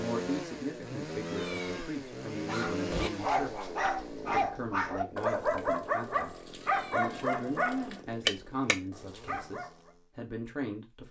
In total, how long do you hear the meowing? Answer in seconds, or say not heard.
2 s.